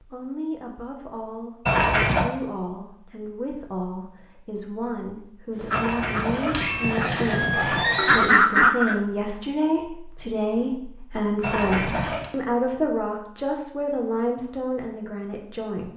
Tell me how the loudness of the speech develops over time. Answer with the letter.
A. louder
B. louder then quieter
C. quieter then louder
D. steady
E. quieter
A.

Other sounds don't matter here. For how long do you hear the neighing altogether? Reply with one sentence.
You can hear the neighing for 4 seconds altogether.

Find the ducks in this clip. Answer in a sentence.
You can hear the ducks from 5.5 to 9.0 s.